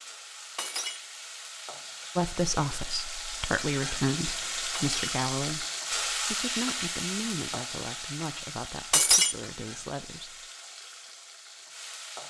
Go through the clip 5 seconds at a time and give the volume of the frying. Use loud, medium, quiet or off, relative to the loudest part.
loud, loud, medium.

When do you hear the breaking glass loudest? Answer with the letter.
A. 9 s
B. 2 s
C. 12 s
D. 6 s
A.